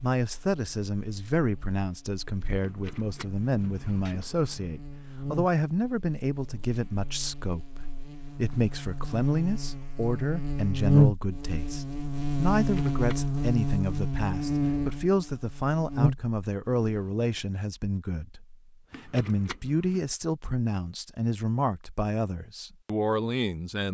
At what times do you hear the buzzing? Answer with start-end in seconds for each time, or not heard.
0.0-17.2.